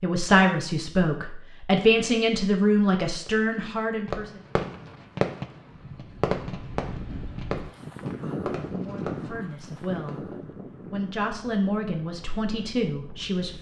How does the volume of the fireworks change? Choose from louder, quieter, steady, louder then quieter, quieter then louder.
quieter.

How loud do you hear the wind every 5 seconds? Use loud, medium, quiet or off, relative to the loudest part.
off, loud, medium.